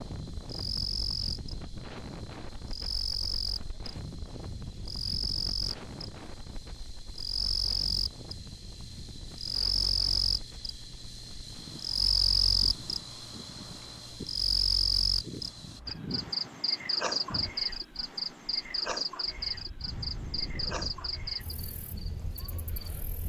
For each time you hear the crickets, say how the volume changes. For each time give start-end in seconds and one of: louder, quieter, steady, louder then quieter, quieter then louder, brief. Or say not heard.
0.0-23.2 louder then quieter.